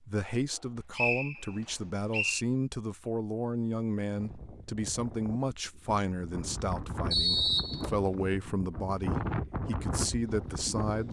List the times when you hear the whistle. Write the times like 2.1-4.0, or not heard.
0.9-2.5, 7.1-7.9.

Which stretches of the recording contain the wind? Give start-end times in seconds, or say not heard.
4.2-11.0.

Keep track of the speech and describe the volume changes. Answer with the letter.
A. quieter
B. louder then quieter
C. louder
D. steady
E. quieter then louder
D.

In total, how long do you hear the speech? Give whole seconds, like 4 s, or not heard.
11 s.